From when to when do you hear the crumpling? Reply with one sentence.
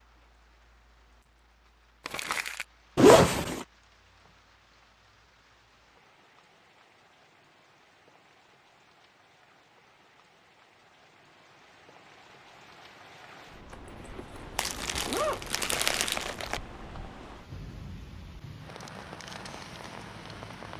The crumpling can be heard from 2.0 to 2.6 s and from 14.6 to 16.6 s.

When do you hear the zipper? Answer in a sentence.
You can hear the zipper from 3.0 to 3.6 s and from 13.7 to 15.4 s.